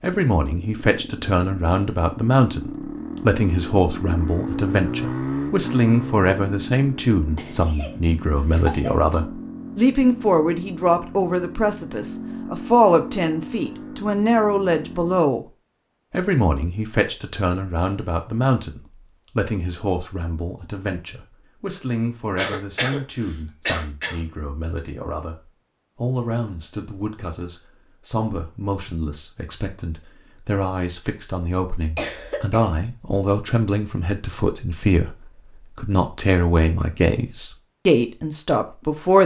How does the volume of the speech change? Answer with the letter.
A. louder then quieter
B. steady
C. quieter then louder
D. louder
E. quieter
C.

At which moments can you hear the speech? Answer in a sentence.
You can hear the speech from 0.0 to 15.4 s and from 16.1 to 39.2 s.